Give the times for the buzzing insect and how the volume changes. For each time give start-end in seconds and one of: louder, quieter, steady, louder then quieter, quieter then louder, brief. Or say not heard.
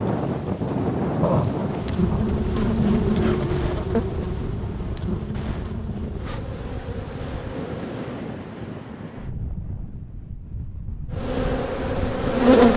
0.0-8.3 louder then quieter
11.1-12.7 brief.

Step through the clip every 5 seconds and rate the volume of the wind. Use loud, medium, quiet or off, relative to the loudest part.
loud, medium, medium.